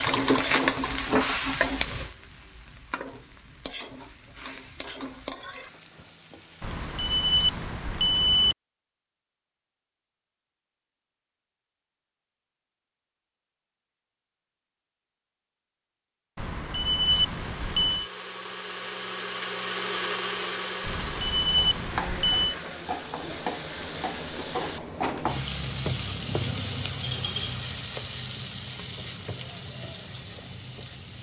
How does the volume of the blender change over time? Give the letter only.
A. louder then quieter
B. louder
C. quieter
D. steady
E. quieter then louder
A.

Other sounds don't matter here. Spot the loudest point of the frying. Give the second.
1 s.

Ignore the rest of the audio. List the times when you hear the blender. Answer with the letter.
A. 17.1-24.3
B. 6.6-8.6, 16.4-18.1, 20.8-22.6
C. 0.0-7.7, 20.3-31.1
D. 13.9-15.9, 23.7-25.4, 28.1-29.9
A.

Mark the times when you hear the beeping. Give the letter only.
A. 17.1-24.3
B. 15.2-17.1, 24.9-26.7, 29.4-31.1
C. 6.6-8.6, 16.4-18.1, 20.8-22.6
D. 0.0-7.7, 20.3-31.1
C.